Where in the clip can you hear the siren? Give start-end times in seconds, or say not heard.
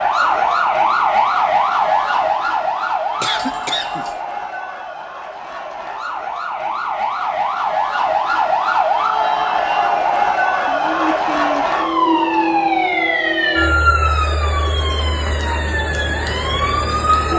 0.0-17.3.